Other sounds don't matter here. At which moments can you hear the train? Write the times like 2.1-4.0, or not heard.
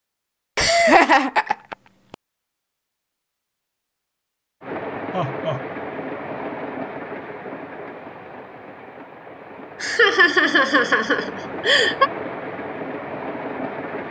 4.6-14.0.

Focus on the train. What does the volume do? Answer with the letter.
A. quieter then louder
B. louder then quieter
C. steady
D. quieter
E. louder
A.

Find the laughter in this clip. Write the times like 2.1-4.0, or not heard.
0.6-2.1, 5.1-5.7, 9.8-12.1.